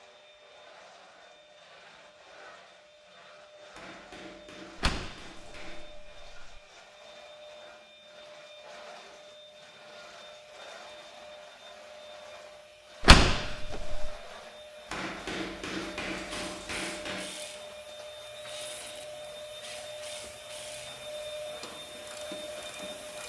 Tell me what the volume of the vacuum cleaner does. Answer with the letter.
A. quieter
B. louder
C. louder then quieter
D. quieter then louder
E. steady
B.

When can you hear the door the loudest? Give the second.
13 s.